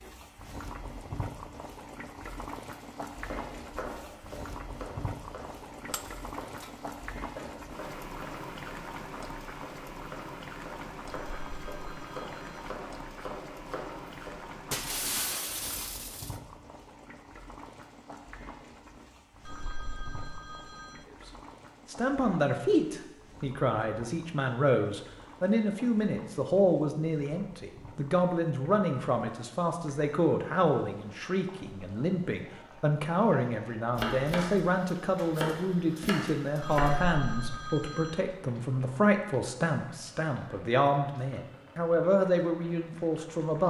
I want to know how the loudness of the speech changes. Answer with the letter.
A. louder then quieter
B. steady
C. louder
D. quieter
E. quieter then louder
B.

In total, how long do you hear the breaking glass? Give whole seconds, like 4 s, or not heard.
3 s.